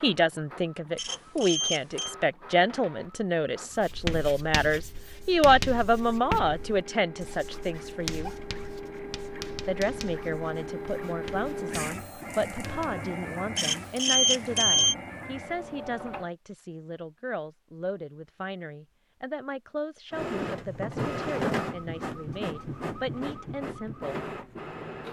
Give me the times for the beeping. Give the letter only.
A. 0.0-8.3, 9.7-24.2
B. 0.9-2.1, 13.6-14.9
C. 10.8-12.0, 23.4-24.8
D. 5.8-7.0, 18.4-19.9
B.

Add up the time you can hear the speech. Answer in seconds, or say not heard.
23 s.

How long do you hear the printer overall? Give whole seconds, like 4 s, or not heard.
21 s.